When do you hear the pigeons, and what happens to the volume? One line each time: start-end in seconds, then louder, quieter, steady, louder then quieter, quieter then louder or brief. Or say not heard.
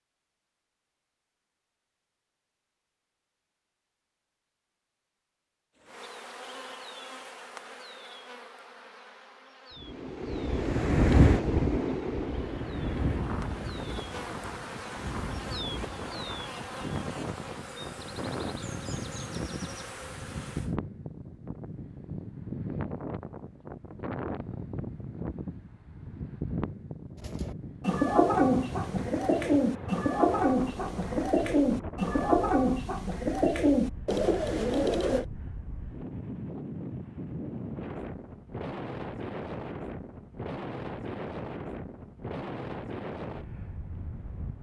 27.2-35.2 steady.